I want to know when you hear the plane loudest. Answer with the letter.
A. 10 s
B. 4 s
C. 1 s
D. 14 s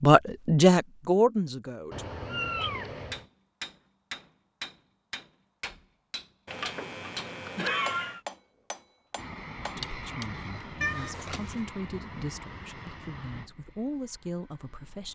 A.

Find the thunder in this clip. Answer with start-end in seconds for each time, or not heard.
not heard.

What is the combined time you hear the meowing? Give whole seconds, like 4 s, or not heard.
4 s.